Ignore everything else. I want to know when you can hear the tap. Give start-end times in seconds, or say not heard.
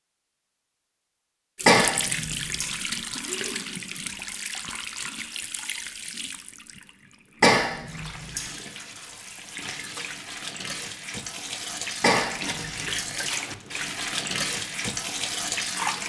1.6-16.0.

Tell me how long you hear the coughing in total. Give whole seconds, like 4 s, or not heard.
3 s.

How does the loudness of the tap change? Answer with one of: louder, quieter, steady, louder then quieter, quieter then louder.
quieter then louder.